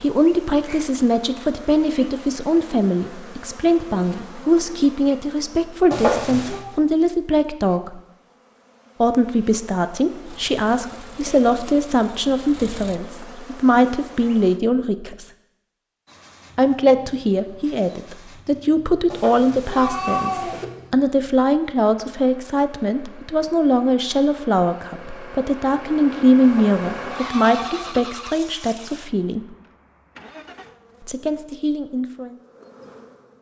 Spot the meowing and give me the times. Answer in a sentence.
You can hear the meowing from 5.9 to 6.7 s, from 19.1 to 20.6 s and from 26.4 to 28.0 s.